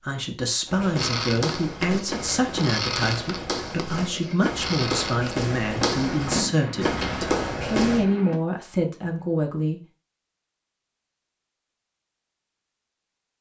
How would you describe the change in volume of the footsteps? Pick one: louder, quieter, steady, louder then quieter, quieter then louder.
louder.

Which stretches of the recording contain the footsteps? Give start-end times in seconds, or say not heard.
0.7-8.1.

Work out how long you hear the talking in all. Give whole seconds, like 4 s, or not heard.
10 s.